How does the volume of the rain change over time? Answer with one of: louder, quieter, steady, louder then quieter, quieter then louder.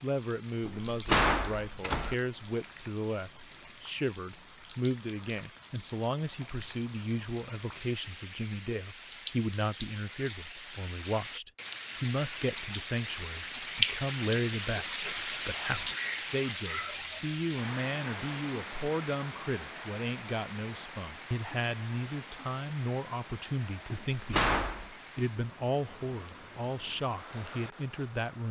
louder then quieter.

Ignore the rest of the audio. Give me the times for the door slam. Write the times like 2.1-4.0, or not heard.
0.7-2.1, 23.9-24.9.